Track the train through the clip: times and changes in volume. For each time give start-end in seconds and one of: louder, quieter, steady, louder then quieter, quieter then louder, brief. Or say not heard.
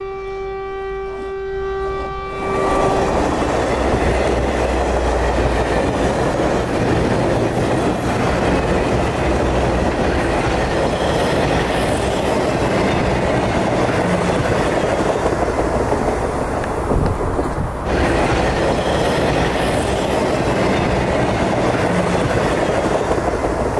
2.2-23.7 steady.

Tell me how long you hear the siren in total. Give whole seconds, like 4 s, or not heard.
3 s.